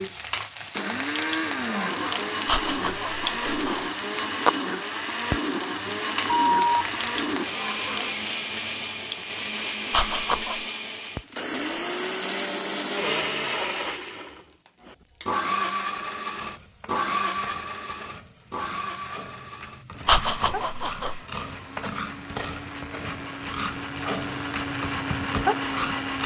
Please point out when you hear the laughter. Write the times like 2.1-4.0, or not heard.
2.5-3.9, 9.9-10.7, 20.1-21.2.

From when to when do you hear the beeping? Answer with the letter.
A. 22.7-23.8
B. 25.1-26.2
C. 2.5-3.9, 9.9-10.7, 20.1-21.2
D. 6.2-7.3
D.